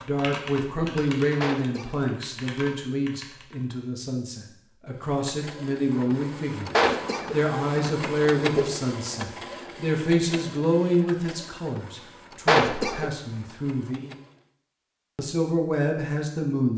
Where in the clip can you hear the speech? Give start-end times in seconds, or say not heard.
0.0-14.2, 15.2-16.7.